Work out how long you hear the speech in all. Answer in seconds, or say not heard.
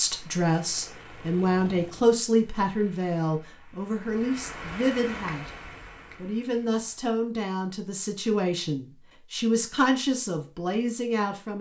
11 s.